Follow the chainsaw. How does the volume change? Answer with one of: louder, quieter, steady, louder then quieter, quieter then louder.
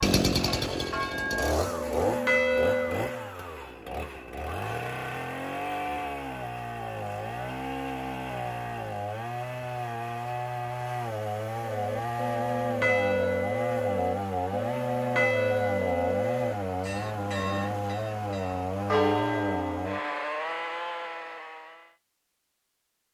steady.